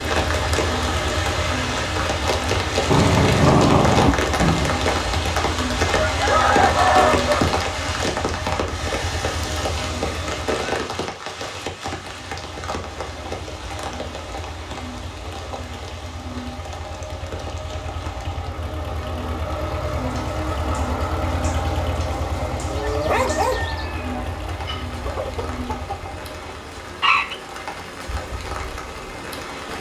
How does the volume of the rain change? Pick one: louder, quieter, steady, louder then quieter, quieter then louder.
quieter then louder.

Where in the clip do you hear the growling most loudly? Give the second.
4 s.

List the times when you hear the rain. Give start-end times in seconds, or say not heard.
0.0-29.7.